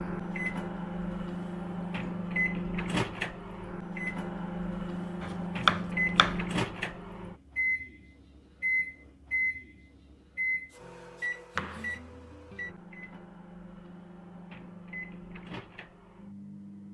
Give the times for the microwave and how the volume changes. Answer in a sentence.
You can hear the microwave from 0.0 to 16.8 s, getting quieter.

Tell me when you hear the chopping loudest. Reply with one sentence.
The loudest moment of the chopping is at 6 seconds.